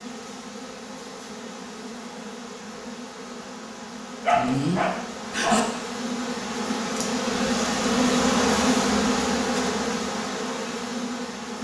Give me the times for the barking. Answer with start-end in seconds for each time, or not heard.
4.2-5.6.